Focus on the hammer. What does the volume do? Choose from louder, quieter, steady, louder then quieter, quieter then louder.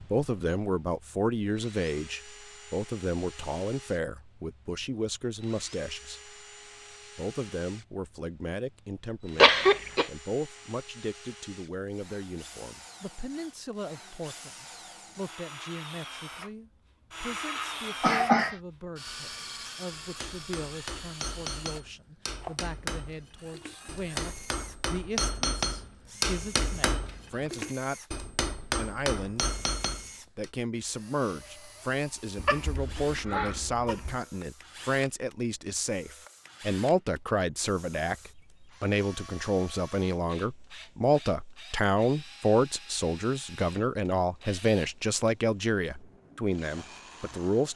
louder.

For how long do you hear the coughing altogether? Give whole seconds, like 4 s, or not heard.
4 s.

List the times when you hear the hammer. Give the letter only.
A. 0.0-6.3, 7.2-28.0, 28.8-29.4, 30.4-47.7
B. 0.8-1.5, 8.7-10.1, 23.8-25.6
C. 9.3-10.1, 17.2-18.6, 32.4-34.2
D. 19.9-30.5
D.